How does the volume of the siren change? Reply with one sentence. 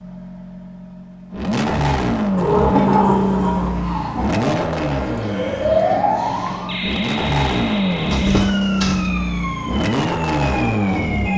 The loudness of the siren goes up, then down.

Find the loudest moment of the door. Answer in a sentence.
The loudest moment of the door is at 3 seconds.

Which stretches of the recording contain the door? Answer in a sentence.
You can hear the door from 2.4 to 3.8 s and from 8.1 to 9.1 s.